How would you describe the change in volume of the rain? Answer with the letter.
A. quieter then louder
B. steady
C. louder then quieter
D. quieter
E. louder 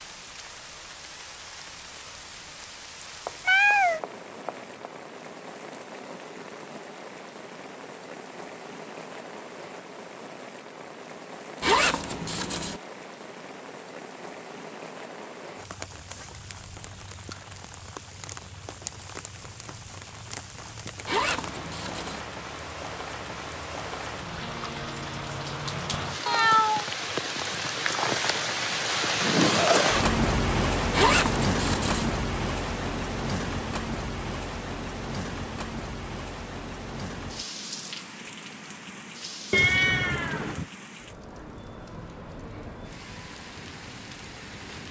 C.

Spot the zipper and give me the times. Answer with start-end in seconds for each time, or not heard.
11.6-12.8, 21.1-22.2, 30.9-32.1.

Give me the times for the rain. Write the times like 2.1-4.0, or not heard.
0.0-44.8.